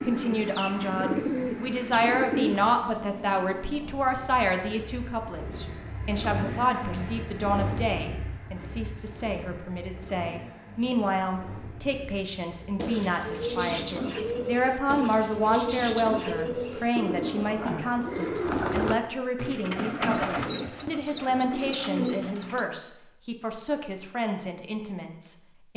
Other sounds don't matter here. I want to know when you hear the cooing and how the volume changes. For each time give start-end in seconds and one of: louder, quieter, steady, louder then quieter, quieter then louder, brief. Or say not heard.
0.0-2.8 brief
12.8-22.7 steady.